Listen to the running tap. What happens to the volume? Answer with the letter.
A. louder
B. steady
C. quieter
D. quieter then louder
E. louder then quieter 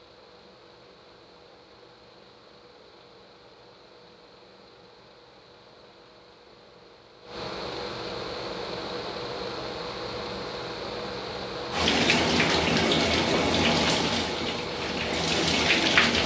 D.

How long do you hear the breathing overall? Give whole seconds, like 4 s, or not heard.
not heard.